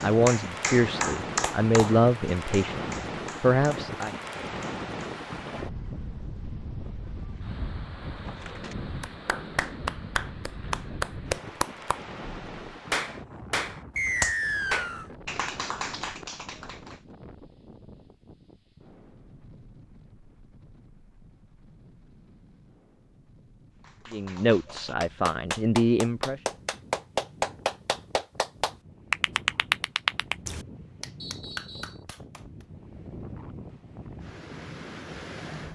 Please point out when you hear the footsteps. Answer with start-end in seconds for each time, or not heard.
not heard.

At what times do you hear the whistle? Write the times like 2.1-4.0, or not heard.
13.9-15.1, 31.2-32.0.